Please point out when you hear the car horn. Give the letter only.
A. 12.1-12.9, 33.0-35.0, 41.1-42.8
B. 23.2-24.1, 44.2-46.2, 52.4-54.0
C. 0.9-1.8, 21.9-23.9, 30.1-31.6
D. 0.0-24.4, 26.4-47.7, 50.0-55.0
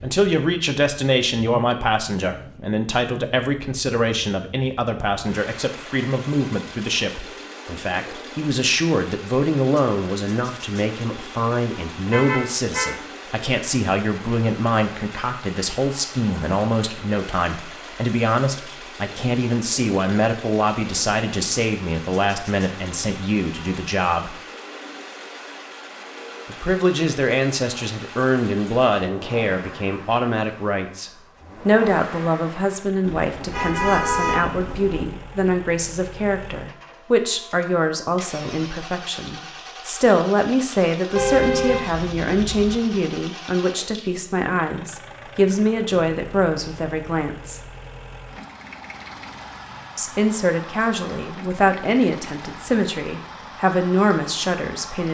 A.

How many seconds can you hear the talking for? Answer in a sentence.
The talking can be heard for 51 seconds in total.